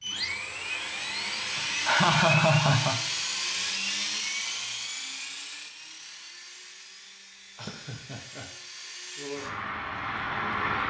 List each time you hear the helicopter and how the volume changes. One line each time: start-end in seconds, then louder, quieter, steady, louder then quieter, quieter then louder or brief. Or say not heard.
0.0-10.8 quieter then louder.